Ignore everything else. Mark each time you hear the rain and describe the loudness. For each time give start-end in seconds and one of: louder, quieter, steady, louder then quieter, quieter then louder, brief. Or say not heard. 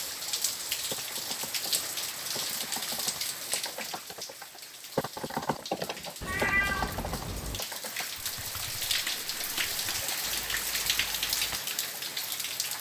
0.0-12.7 quieter then louder.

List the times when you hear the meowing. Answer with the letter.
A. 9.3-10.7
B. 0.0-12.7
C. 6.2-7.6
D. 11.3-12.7
C.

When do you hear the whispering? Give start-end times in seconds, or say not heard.
not heard.